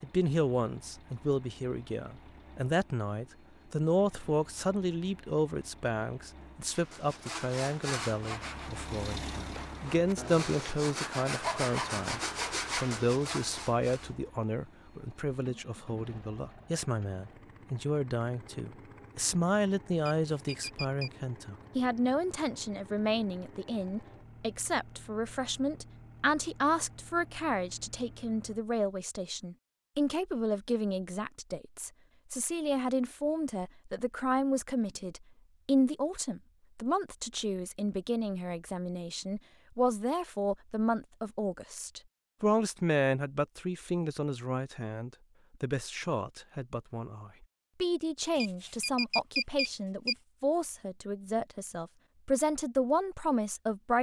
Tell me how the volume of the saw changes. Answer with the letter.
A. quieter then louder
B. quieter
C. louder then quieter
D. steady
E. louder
A.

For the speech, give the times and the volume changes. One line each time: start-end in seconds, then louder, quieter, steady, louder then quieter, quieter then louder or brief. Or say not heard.
0.0-53.9 steady.